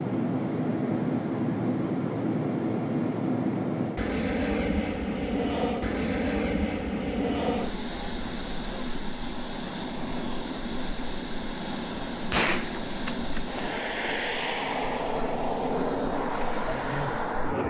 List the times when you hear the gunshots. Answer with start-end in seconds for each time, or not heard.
12.3-14.2.